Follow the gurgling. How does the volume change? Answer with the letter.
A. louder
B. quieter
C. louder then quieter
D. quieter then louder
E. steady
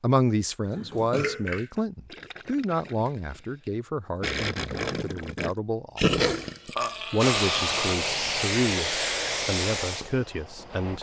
D.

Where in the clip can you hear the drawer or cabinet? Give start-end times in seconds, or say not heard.
not heard.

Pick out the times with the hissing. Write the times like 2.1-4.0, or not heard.
7.2-10.9.